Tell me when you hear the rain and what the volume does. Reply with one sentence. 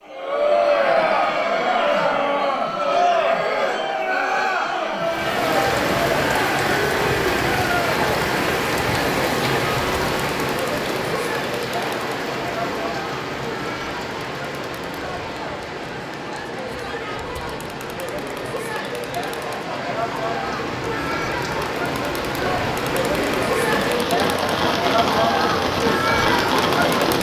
You can hear the rain from 5.0 to 27.1 s, getting quieter then louder.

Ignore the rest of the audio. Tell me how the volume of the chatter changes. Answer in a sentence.
The loudness of the chatter goes down, then up.